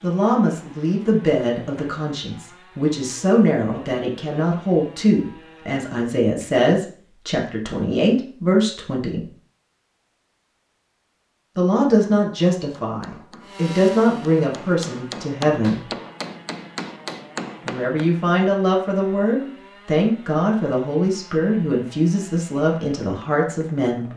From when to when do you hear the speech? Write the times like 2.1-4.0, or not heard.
0.0-9.2, 11.6-15.8, 17.6-24.1.